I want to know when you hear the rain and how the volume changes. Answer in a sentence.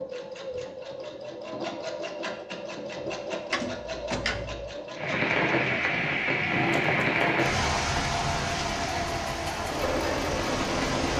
The rain can be heard from 5.0 to 11.1 s, getting quieter.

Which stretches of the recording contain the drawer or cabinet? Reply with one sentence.
You can hear the drawer or cabinet from 3.5 to 4.8 s.